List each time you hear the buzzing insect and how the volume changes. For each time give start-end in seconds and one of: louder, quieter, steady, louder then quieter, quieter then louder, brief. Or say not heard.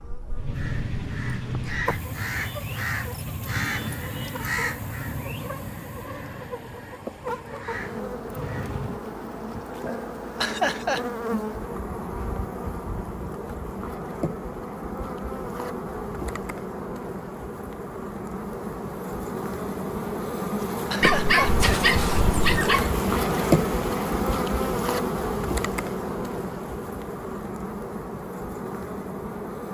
0.0-29.6 louder.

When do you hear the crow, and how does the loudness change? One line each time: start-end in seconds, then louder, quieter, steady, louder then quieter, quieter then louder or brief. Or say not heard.
0.3-9.0 quieter.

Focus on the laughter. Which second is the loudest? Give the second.
11 s.